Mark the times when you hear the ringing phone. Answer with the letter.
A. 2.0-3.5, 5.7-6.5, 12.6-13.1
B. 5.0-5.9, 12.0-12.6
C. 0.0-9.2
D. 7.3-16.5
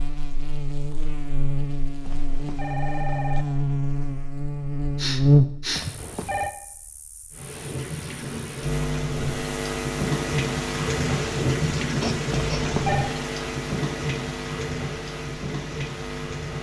A.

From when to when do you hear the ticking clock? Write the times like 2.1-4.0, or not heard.
not heard.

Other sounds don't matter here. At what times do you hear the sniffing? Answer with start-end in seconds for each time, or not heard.
5.0-5.9, 12.0-12.6.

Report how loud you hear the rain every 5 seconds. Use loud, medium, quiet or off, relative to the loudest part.
off, medium, loud, medium.